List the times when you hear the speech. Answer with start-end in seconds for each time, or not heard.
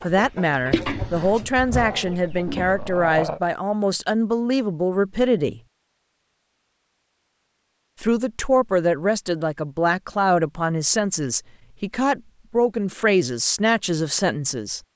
0.0-5.6, 8.0-14.8.